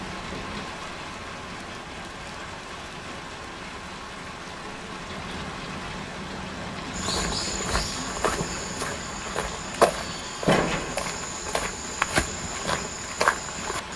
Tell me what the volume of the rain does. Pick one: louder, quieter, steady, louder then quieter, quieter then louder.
louder then quieter.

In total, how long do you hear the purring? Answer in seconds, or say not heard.
not heard.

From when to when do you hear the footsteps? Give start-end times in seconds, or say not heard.
6.9-13.9.